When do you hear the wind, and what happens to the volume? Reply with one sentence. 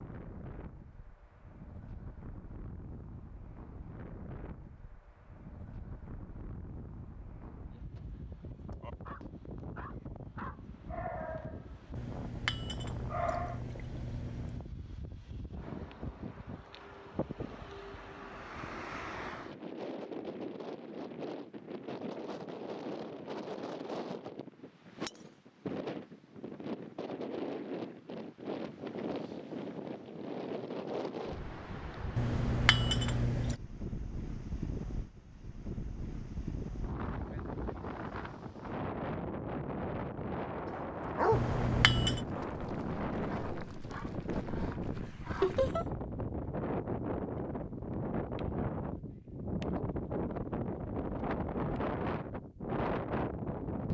The wind can be heard from 0.0 to 53.8 s, getting louder.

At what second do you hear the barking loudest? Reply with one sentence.
The loudest moment of the barking is at 41 seconds.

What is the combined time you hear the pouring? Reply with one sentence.
The pouring can be heard for 5 seconds in total.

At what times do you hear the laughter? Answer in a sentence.
The laughter can be heard from 45.4 to 45.9 s.